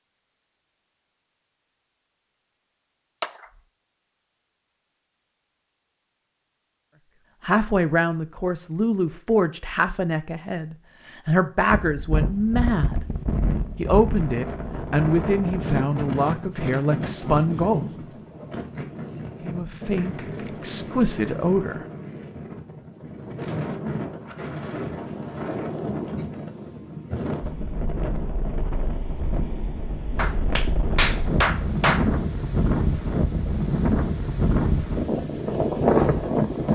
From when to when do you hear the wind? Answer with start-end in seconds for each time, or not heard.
11.7-36.7.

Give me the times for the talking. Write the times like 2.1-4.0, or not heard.
7.4-13.1, 13.8-17.9, 19.4-21.9.